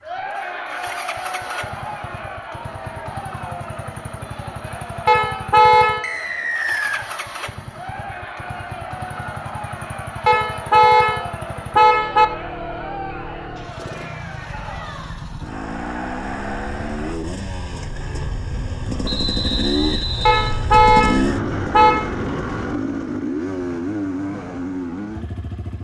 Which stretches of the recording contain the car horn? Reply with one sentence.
You can hear the car horn from 5.0 to 6.2 s, from 10.2 to 12.2 s and from 20.2 to 22.1 s.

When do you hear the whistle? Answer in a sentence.
You can hear the whistle from 6.0 to 7.0 s and from 19.1 to 20.6 s.